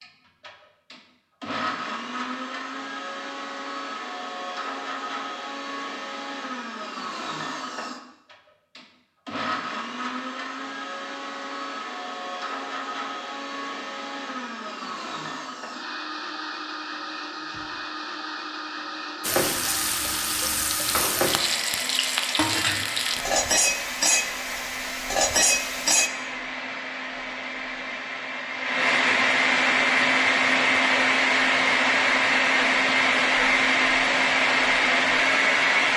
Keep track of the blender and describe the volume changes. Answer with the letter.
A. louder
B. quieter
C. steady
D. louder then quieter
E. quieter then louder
A.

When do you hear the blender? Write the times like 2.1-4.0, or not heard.
0.0-35.9.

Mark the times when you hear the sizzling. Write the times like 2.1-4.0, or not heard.
19.2-26.1.